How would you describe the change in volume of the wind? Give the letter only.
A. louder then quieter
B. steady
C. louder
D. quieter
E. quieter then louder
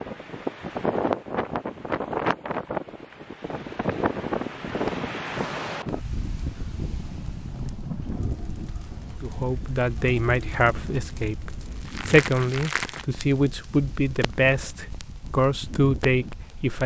D.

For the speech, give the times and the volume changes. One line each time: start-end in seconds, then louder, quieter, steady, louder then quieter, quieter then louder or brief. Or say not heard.
9.2-16.8 steady.